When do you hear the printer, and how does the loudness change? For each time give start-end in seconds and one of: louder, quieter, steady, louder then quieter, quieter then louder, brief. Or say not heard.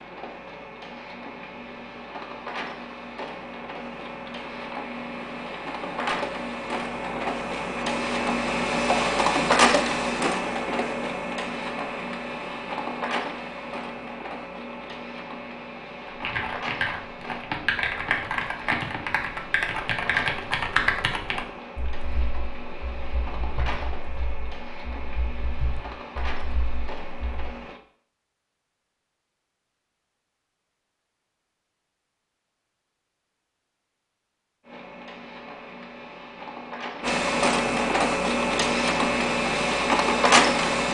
0.0-27.8 louder then quieter
34.6-40.8 louder.